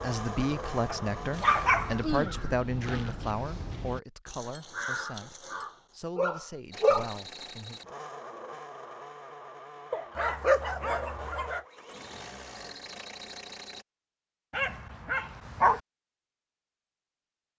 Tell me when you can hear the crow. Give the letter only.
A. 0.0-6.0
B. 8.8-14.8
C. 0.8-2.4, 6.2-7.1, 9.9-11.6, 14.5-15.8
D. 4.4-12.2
A.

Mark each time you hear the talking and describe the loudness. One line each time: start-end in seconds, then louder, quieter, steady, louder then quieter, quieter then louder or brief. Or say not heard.
0.0-7.8 quieter then louder.